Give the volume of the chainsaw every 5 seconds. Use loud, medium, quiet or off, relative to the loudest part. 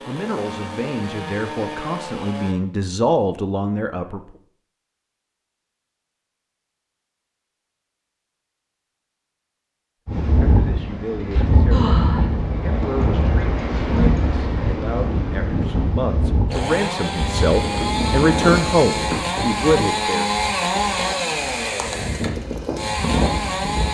medium, off, off, loud, loud.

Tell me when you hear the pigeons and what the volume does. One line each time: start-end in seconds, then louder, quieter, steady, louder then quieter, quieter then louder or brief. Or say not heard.
not heard.